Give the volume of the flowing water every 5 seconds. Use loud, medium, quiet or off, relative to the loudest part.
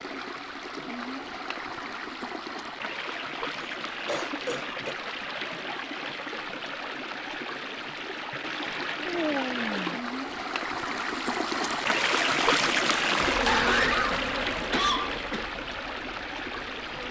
medium, medium, loud, medium.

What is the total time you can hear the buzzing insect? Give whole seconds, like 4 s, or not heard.
4 s.